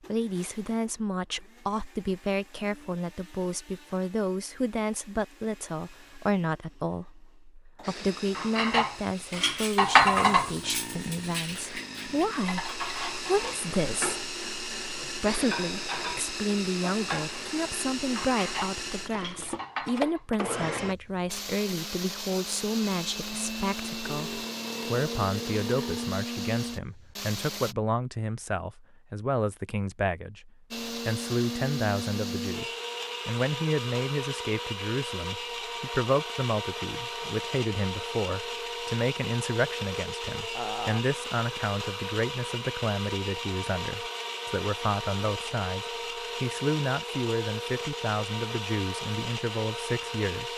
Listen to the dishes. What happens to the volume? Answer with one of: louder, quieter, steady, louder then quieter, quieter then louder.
quieter.